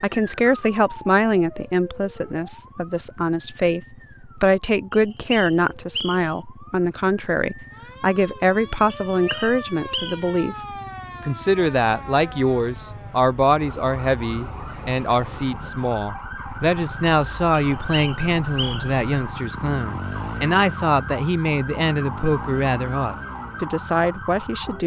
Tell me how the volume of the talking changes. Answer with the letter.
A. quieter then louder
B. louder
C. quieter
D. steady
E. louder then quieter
D.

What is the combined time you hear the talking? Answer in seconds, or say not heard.
24 s.